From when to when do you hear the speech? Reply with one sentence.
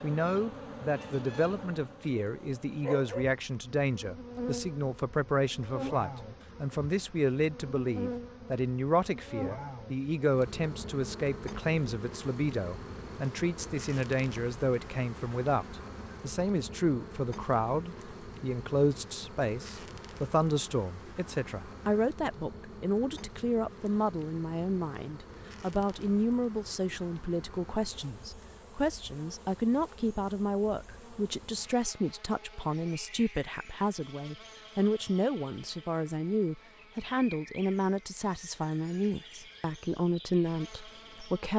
You can hear the speech from 0.0 to 41.5 s.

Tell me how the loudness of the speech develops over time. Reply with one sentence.
The loudness of the speech stays about the same.